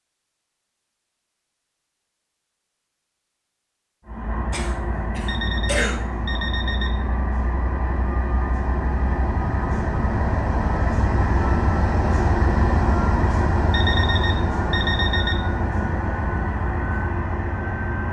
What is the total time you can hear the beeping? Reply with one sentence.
You can hear the beeping for 3 seconds altogether.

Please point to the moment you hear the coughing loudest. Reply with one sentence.
The volume of the coughing peaks at 6 seconds.